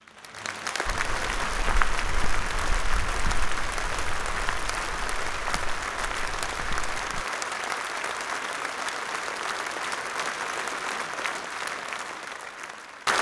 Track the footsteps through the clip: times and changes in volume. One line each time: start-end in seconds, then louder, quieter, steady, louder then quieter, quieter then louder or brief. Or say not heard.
0.8-7.2 quieter.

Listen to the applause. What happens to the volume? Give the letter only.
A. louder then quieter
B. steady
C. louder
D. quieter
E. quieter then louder
B.